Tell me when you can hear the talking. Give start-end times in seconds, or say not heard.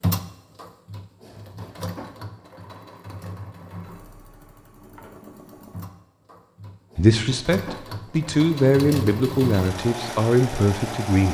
7.0-11.2.